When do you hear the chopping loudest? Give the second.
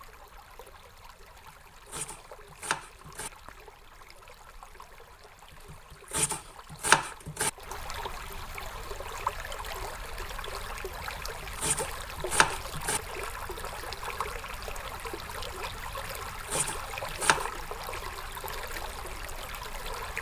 7 s.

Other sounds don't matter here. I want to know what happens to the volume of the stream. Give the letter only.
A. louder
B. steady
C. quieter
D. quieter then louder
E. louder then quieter
A.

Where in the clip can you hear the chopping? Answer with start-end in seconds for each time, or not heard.
1.9-3.3, 5.7-7.5, 11.2-13.0, 16.1-17.5.